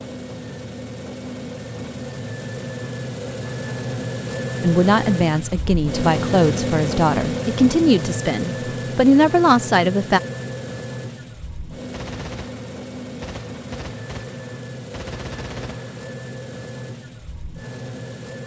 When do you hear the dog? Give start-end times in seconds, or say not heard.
not heard.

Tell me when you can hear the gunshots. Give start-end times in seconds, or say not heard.
11.9-16.1.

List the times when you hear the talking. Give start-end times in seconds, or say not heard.
4.6-10.2.